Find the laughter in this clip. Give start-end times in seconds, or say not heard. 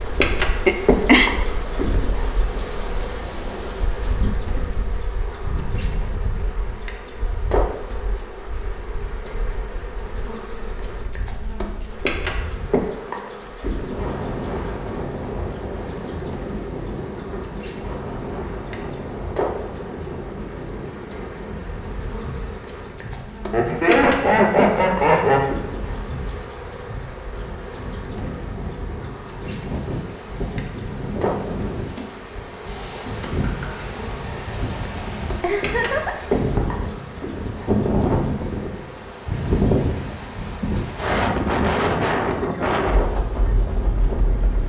0.7-1.3, 23.5-25.4, 35.4-36.1.